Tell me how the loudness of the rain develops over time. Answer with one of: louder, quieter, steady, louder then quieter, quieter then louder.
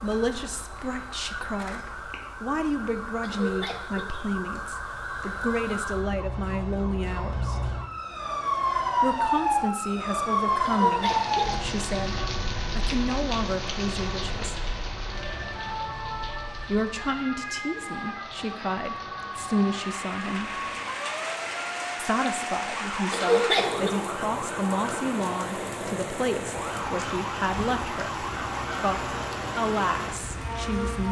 quieter then louder.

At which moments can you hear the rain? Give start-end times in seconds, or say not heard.
10.9-31.0.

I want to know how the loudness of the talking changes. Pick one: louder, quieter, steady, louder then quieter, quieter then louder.
steady.